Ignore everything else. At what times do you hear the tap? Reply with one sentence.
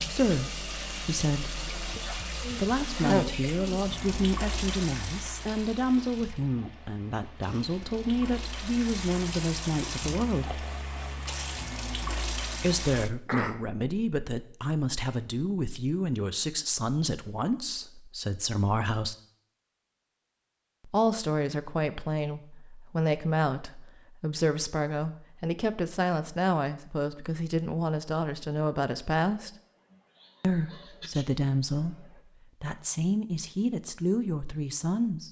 You can hear the tap from 0.0 to 13.1 s.